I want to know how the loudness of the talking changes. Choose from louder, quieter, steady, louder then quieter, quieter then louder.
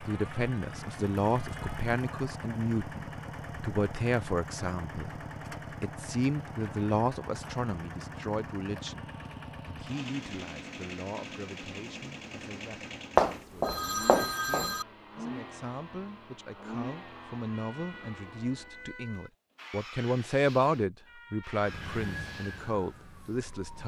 quieter then louder.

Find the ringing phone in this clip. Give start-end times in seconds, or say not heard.
13.2-14.8.